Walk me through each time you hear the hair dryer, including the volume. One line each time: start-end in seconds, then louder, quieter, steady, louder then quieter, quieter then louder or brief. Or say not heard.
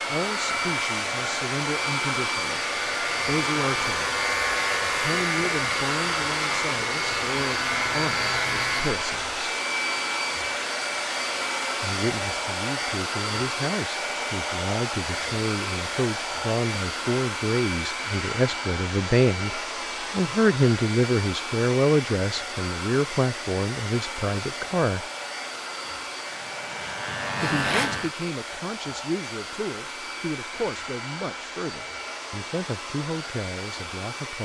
0.0-34.4 quieter.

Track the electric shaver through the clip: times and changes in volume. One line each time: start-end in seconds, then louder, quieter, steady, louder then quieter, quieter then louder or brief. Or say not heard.
0.2-9.0 louder
26.2-28.1 brief.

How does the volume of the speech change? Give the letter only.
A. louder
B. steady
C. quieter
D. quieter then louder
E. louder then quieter
E.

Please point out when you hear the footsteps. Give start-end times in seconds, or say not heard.
not heard.